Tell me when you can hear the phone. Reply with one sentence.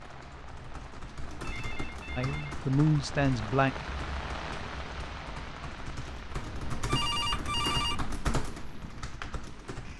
You can hear the phone from 1.4 to 2.6 s and from 6.4 to 8.2 s.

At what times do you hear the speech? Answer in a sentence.
You can hear the speech from 2.1 to 3.8 s.